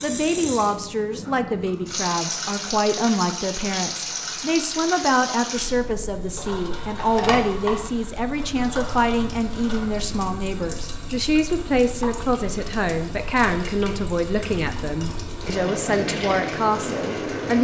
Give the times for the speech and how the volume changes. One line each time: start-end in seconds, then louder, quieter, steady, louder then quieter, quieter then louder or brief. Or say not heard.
0.0-17.5 steady.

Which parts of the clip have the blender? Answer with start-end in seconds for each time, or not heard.
not heard.